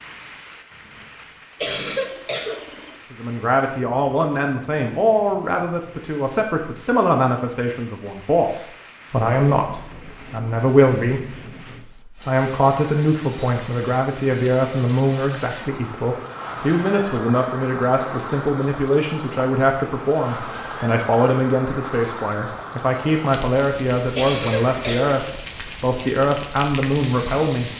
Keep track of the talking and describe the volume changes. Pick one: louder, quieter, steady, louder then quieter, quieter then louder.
steady.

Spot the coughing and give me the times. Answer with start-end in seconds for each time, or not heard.
1.6-3.0, 24.1-25.2.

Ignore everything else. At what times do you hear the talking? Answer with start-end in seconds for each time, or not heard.
3.1-27.7.